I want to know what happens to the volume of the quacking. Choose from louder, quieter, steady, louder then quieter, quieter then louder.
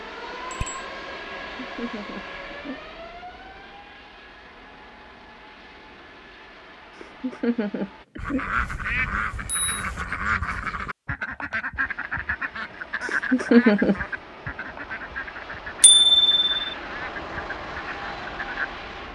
quieter.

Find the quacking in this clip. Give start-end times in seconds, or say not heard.
8.2-18.7.